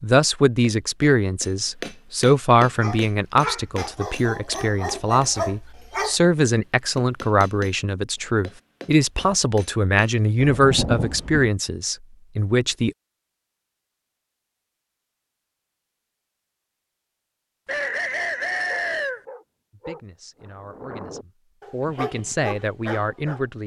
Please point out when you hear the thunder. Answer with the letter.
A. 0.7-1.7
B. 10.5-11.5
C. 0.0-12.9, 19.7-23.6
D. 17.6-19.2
B.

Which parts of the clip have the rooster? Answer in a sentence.
The rooster can be heard from 17.6 to 19.2 s.